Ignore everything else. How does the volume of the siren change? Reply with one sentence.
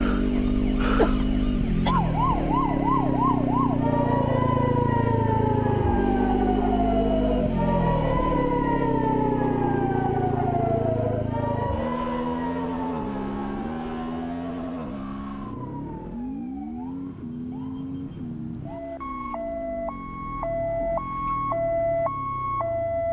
The loudness of the siren goes down, then up.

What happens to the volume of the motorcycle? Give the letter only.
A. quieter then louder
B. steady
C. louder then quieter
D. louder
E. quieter
E.